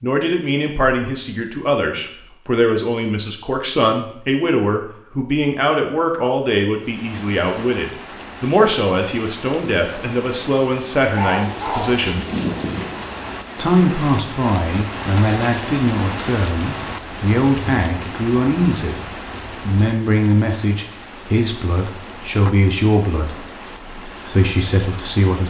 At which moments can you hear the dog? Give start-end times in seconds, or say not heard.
11.1-13.1.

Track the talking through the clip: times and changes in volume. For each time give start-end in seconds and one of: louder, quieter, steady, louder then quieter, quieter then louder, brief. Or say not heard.
0.0-12.2 steady
13.6-25.4 steady.